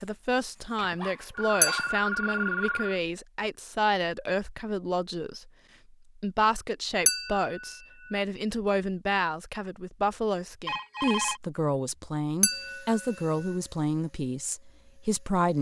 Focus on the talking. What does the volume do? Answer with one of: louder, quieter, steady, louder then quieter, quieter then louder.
steady.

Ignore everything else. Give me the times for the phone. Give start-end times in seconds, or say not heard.
0.8-3.0, 10.7-11.4.